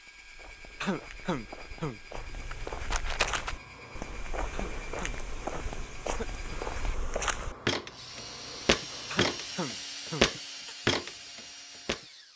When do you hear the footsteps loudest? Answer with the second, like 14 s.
10 s.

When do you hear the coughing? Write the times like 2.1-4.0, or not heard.
0.8-2.0, 4.5-6.6, 9.1-10.8.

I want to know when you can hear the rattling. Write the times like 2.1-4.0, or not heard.
2.1-3.5.